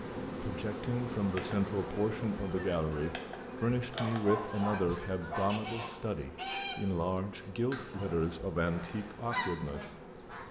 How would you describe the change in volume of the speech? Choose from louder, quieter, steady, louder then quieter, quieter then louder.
steady.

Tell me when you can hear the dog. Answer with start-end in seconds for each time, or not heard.
3.9-5.9.